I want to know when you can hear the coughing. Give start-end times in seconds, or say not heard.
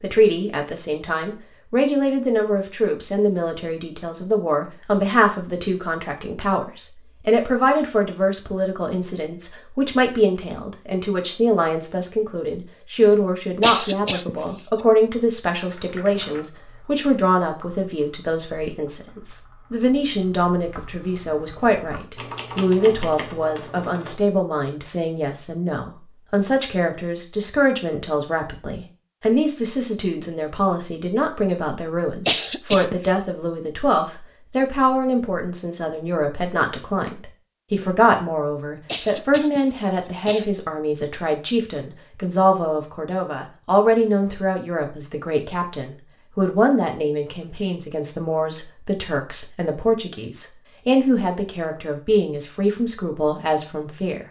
13.6-14.4, 32.2-33.0, 38.9-40.5.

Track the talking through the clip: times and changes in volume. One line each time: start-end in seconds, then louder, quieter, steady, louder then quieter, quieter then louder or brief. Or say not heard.
0.0-54.2 steady.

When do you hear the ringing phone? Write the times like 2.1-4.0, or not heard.
not heard.